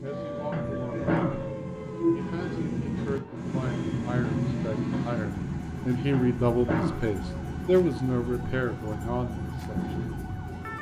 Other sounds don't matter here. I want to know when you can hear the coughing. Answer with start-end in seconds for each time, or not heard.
0.5-1.5, 6.1-7.2.